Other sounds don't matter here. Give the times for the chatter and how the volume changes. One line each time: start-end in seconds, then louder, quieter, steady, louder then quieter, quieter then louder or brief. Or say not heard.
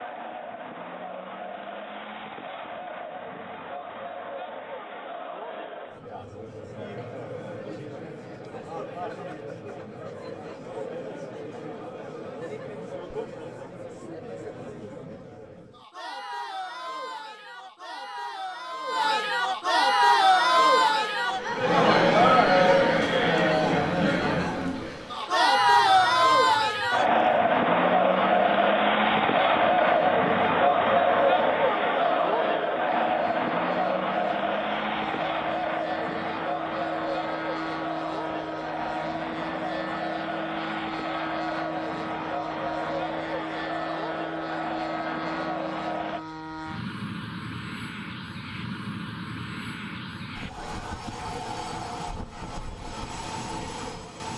0.0-46.2 louder then quieter.